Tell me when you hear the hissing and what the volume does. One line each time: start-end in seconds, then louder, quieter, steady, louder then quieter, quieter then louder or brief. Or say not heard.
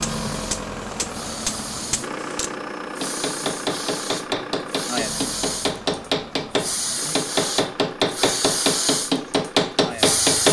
0.0-10.4 louder.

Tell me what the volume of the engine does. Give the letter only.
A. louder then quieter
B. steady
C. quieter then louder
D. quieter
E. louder
D.